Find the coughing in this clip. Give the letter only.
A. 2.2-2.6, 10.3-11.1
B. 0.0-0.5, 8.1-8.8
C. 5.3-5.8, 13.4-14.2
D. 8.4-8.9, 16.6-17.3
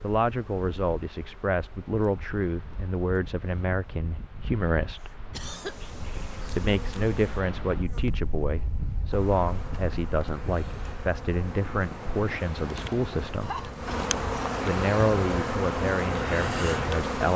C.